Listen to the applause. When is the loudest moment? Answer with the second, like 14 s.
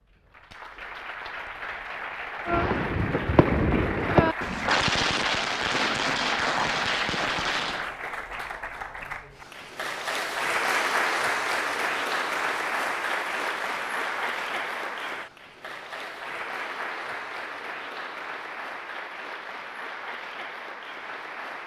11 s.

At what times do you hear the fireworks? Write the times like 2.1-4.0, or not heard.
2.5-7.9.